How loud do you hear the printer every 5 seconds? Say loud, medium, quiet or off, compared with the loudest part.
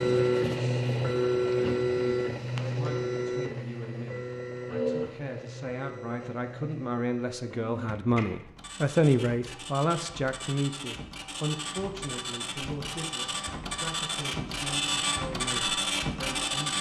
loud, quiet, medium, loud.